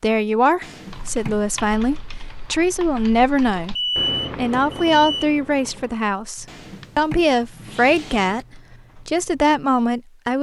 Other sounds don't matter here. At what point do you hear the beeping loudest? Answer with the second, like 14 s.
4 s.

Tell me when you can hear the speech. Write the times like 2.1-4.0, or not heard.
0.0-3.8, 4.3-10.3.